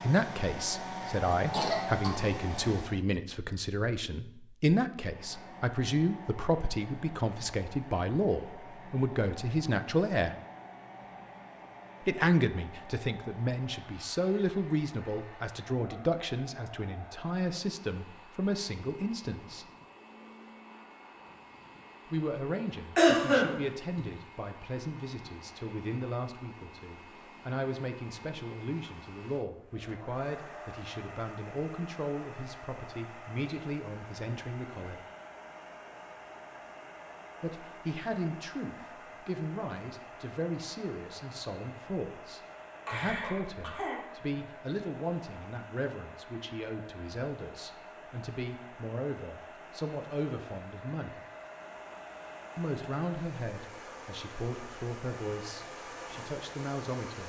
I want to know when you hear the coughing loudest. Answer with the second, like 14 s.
23 s.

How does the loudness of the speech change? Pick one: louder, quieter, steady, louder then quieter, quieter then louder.
quieter.